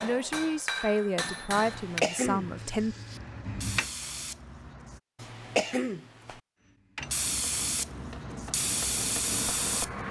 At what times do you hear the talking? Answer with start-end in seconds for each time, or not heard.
0.0-3.0.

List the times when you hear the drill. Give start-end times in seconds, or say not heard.
not heard.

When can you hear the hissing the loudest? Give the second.
9 s.